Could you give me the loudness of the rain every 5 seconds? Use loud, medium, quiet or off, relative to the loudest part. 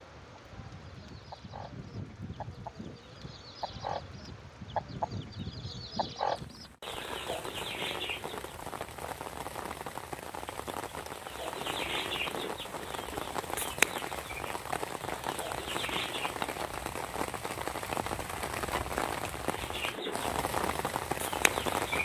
quiet, medium, medium, loud, loud.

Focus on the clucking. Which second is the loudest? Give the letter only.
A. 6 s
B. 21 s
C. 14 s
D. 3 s
C.